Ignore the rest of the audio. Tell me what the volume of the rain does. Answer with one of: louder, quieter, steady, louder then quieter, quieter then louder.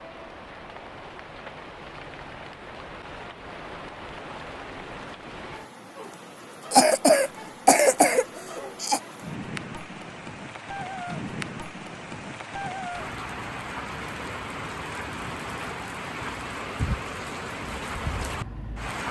louder.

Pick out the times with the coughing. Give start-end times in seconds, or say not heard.
6.7-9.0.